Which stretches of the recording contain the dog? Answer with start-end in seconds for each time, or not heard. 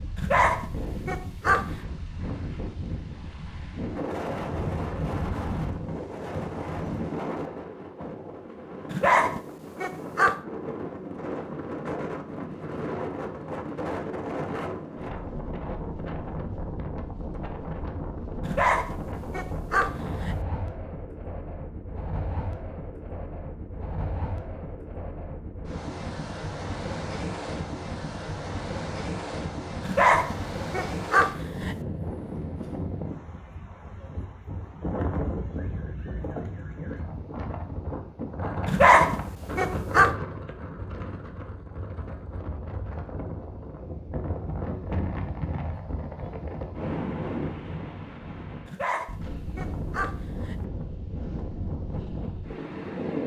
0.1-1.6, 8.9-10.3, 18.4-20.4, 29.9-31.8, 38.6-40.1, 48.6-50.5.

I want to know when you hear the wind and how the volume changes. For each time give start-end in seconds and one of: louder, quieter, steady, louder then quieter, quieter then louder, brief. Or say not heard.
0.0-53.2 steady.